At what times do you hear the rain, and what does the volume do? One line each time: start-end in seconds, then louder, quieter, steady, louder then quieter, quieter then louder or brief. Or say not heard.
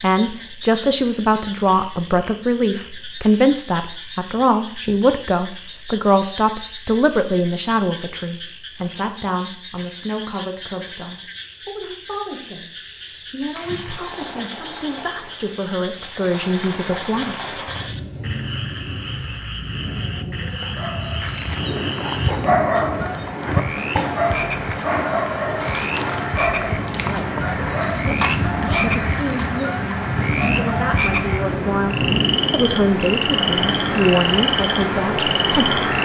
13.6-36.0 louder.